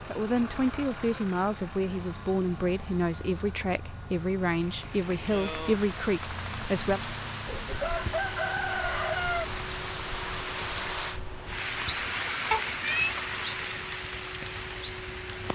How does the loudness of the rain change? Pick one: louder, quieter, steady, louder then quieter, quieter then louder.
louder.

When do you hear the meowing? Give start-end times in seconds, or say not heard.
12.5-13.2.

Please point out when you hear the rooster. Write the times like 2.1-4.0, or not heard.
7.5-9.4.